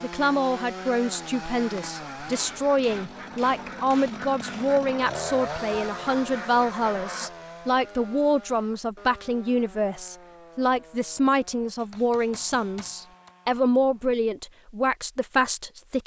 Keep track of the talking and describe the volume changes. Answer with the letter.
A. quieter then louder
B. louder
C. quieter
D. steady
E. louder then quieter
D.